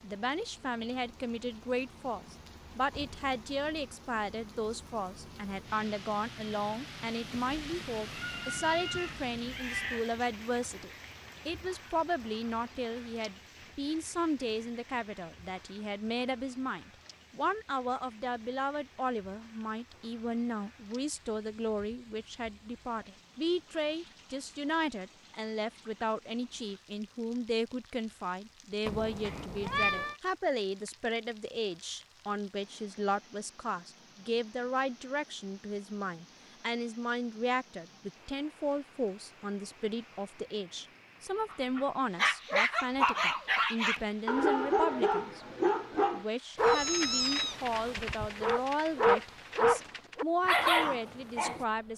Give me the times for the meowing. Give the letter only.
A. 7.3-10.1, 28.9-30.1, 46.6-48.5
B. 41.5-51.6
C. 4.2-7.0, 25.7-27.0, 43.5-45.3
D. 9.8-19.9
A.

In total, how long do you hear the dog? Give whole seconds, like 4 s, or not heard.
10 s.